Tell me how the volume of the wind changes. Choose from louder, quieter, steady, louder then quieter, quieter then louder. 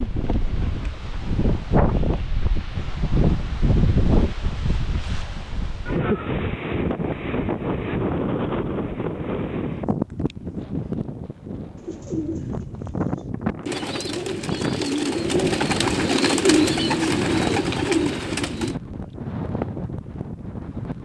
quieter.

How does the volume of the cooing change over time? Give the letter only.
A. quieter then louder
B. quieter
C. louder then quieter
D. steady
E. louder
E.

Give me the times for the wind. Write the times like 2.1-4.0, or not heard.
0.0-21.0.